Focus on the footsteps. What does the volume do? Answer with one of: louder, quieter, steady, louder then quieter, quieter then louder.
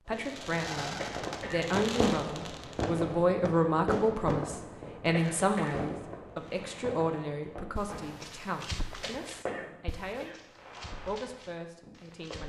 quieter.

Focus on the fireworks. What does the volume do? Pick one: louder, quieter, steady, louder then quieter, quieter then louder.
quieter.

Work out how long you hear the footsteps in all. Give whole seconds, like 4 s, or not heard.
5 s.